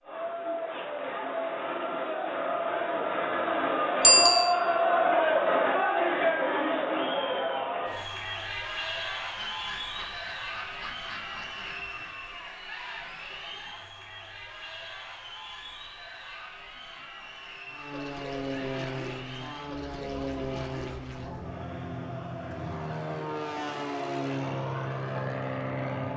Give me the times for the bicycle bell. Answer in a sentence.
You can hear the bicycle bell from 4.0 to 4.5 s.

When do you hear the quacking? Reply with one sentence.
You can hear the quacking from 9.3 to 12.2 s.